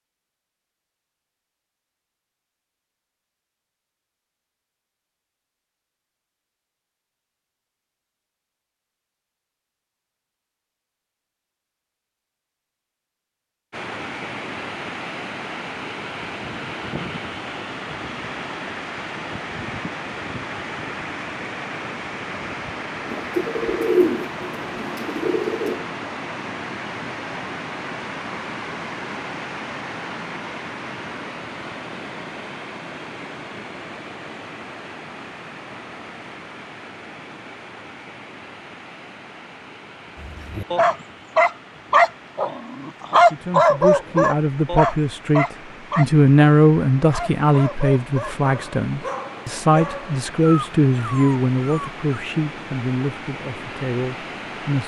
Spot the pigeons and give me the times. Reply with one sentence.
You can hear the pigeons from 23.1 to 25.9 s.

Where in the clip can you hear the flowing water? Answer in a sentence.
You can hear the flowing water from 13.7 to 54.8 s.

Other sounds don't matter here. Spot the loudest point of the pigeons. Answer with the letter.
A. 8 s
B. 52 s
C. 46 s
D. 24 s
D.